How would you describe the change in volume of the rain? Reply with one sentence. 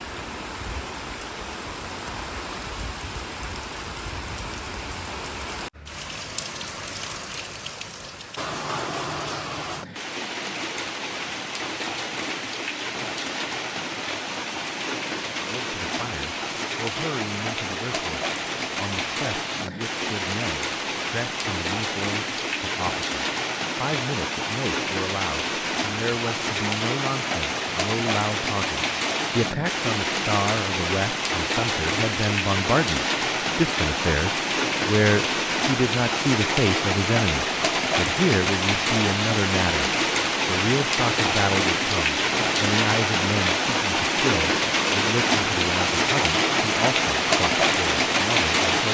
The loudness of the rain goes up.